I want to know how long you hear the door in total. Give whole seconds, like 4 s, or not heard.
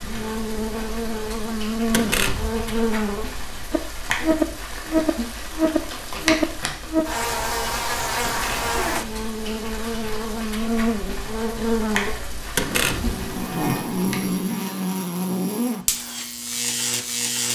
2 s.